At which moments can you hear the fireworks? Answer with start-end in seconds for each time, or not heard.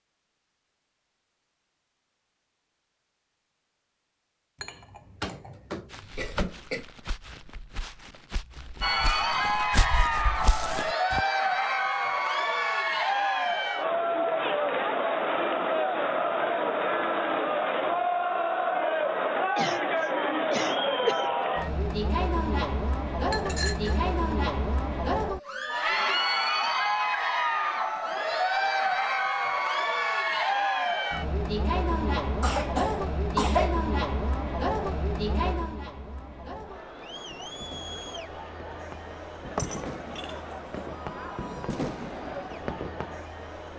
37.3-43.2.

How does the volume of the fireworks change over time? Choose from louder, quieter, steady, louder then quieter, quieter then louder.
louder.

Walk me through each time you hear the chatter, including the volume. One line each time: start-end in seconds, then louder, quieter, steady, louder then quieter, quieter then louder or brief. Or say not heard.
8.8-43.7 quieter.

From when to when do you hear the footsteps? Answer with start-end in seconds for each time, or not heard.
5.9-11.2.